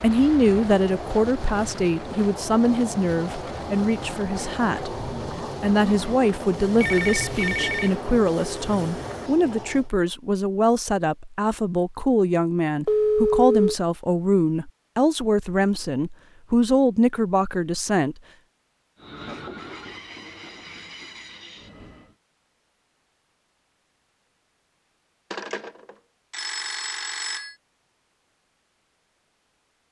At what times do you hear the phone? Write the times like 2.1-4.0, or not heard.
6.8-8.0, 12.8-13.8, 25.3-27.6.